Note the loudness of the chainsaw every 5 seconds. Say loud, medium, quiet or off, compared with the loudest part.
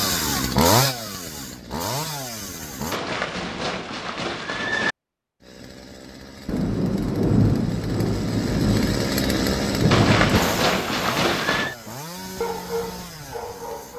loud, medium, medium.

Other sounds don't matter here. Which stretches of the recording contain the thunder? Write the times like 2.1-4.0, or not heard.
6.5-10.4.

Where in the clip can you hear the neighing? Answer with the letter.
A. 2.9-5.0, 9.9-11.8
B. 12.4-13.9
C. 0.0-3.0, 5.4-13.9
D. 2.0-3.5
A.